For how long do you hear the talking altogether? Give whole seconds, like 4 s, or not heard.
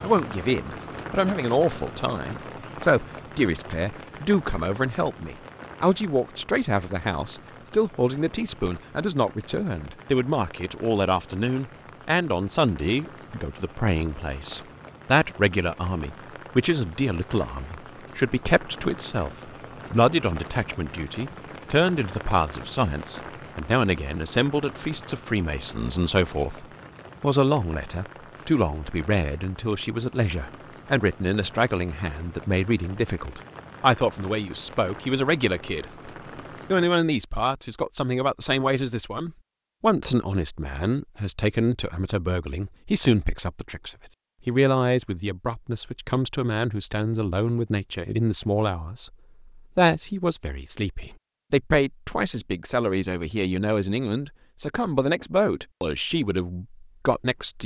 57 s.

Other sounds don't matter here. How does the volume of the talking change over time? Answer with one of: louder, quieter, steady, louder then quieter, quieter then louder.
steady.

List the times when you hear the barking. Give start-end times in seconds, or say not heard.
not heard.